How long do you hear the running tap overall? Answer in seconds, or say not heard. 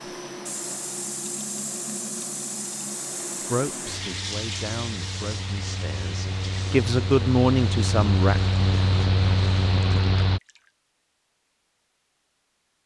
11 s.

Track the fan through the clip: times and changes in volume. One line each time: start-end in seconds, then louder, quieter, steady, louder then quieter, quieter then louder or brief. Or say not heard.
0.0-10.4 louder.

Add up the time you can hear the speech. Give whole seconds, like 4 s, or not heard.
5 s.